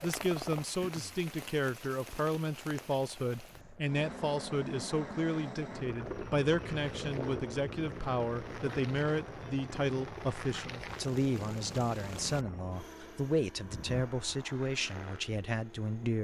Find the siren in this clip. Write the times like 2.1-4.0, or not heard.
not heard.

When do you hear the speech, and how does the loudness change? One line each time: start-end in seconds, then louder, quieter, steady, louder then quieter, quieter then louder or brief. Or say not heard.
0.0-16.1 steady.